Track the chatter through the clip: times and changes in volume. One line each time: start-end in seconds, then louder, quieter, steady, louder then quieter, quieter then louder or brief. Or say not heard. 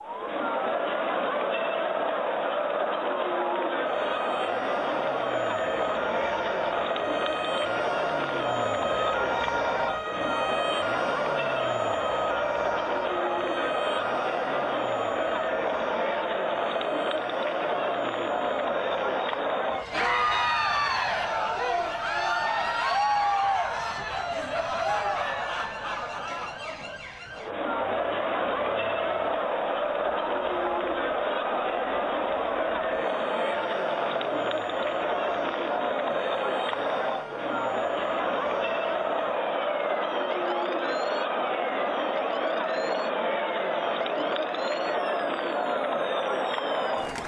0.0-47.2 steady.